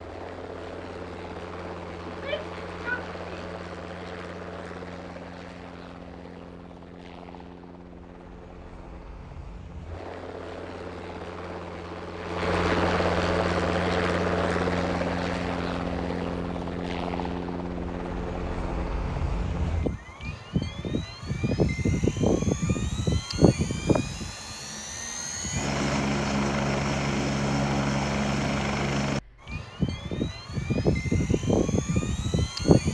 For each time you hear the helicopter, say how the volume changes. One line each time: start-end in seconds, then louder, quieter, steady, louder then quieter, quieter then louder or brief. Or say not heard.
0.0-32.8 louder.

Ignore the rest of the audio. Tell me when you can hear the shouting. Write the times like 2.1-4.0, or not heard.
2.0-3.5.